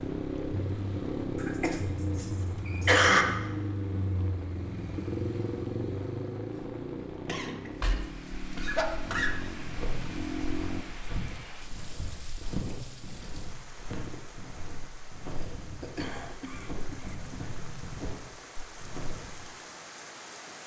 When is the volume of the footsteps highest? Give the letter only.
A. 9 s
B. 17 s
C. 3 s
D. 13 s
D.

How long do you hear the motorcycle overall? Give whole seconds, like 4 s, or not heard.
11 s.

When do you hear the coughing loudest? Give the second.
3 s.